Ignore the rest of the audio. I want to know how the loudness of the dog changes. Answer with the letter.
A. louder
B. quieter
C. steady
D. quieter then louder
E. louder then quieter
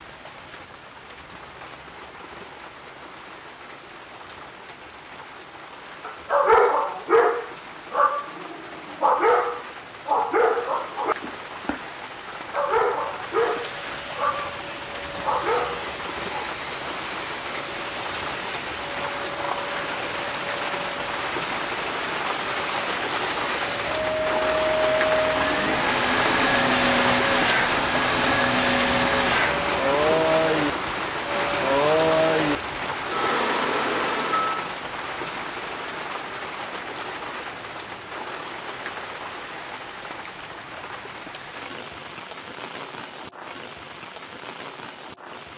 B.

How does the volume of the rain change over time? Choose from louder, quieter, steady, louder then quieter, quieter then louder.
louder then quieter.